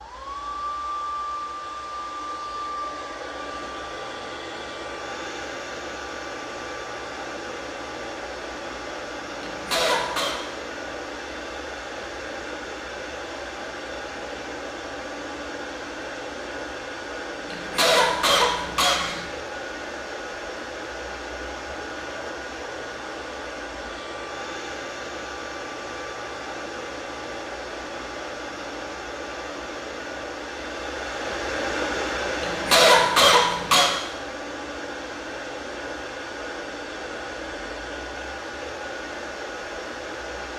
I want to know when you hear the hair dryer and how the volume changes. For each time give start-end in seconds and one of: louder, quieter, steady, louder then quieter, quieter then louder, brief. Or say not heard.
0.0-40.5 steady.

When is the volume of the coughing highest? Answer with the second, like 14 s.
33 s.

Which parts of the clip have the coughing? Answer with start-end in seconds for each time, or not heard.
9.4-10.4, 17.5-19.2, 32.4-33.9.